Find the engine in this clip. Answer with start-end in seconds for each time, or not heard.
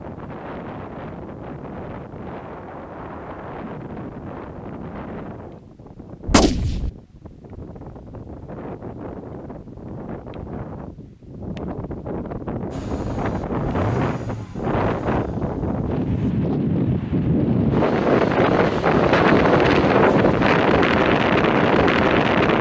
12.7-16.4.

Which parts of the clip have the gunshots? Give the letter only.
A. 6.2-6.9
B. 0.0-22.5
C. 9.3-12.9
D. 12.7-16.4
A.